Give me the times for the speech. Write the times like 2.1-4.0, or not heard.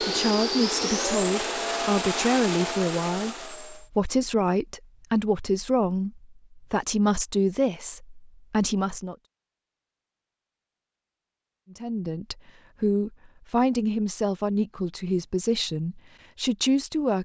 0.0-9.2, 11.7-17.2.